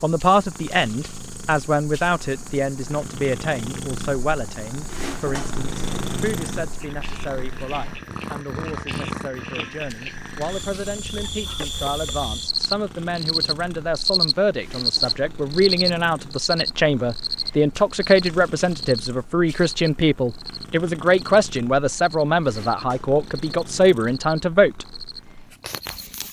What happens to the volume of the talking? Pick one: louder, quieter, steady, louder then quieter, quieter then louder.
quieter then louder.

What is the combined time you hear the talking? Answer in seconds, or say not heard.
25 s.